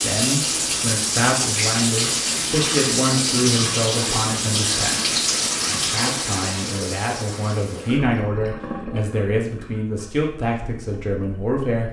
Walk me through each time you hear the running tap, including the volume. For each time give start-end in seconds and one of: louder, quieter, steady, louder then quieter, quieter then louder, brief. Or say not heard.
0.0-11.6 quieter.